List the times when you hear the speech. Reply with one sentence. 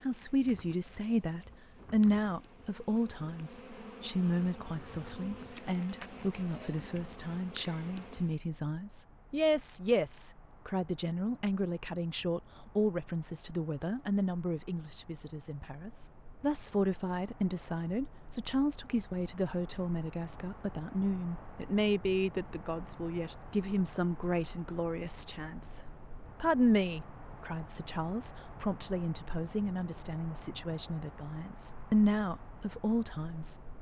The speech can be heard from 0.0 to 25.8 s and from 26.4 to 33.5 s.